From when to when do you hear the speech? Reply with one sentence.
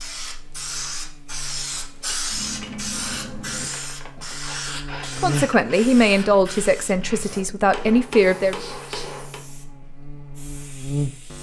The speech can be heard from 5.2 to 8.6 s.